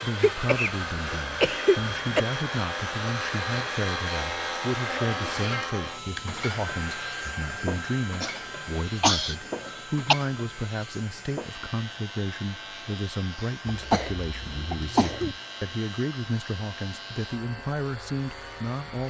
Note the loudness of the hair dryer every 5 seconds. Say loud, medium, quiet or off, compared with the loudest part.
loud, loud, quiet, quiet.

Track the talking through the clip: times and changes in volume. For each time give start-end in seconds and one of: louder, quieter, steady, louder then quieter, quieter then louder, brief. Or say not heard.
0.0-19.0 steady.